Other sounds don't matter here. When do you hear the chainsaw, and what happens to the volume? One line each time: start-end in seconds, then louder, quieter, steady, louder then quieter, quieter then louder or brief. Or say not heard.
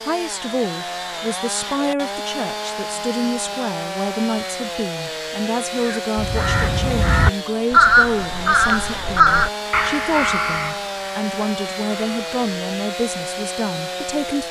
0.0-14.4 steady.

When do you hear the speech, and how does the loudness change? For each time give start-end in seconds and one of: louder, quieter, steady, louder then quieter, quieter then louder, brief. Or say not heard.
0.0-14.4 steady.